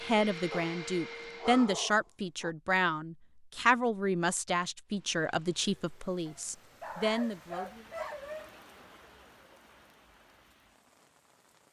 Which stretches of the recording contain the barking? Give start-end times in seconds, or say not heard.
0.5-2.5, 6.2-8.6.